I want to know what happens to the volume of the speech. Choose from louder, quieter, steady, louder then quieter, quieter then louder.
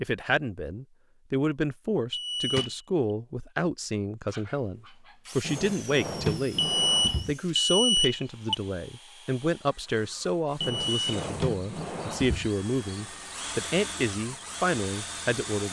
steady.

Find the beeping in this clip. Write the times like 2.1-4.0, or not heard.
2.1-2.8, 6.5-8.6, 10.6-11.1.